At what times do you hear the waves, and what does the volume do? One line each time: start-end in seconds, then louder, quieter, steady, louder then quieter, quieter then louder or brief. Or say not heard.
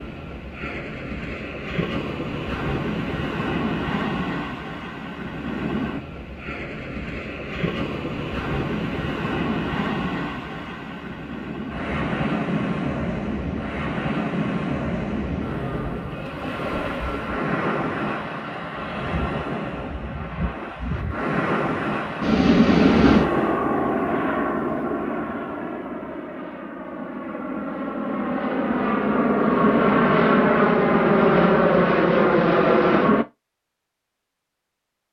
0.0-23.7 steady.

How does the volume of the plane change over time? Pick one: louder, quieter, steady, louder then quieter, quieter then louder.
quieter then louder.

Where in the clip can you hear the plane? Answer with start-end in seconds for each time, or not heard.
22.2-33.2.